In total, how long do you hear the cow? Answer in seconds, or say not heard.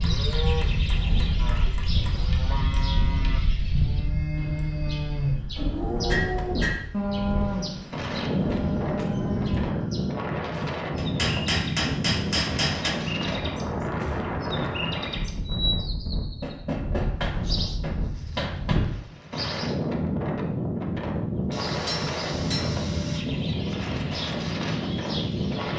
10 s.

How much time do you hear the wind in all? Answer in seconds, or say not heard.
26 s.